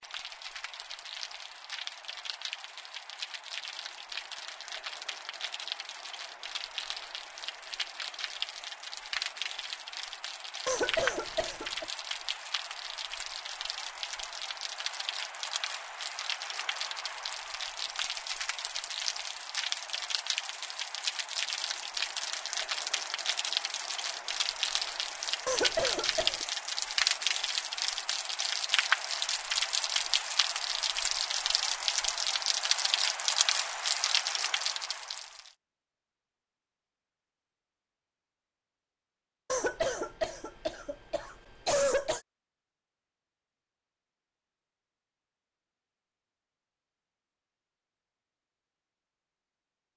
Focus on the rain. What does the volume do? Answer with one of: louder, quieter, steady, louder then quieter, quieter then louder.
louder.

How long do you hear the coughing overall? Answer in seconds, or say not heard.
5 s.